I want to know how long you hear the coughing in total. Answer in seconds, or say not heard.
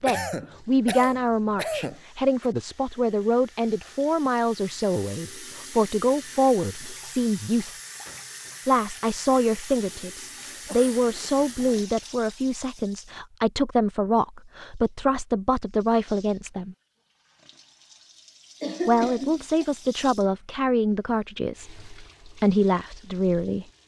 4 s.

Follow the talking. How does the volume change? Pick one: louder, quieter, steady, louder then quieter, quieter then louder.
steady.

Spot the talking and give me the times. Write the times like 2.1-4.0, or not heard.
0.0-7.8, 8.7-16.8, 18.9-23.6.